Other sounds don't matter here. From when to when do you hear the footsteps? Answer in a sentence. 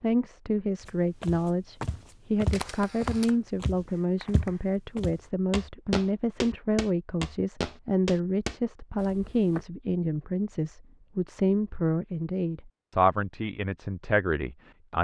The footsteps can be heard from 0.8 to 9.7 s.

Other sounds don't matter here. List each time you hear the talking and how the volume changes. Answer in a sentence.
The talking can be heard from 0.0 to 14.9 s, at a steady volume.